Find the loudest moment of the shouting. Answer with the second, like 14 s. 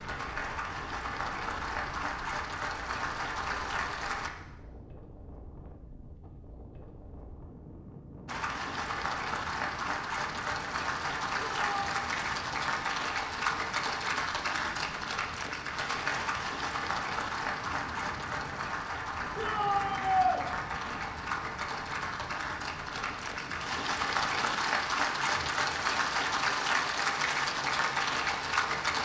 20 s.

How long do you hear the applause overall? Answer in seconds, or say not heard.
25 s.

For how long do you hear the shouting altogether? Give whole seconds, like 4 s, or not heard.
2 s.